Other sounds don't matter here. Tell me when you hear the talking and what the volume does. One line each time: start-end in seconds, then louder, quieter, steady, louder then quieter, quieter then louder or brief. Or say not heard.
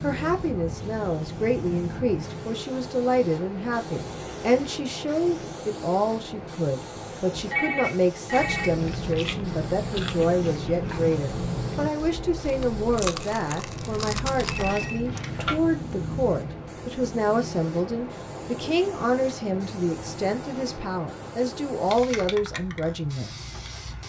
0.0-23.4 steady.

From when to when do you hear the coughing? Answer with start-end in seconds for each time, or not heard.
not heard.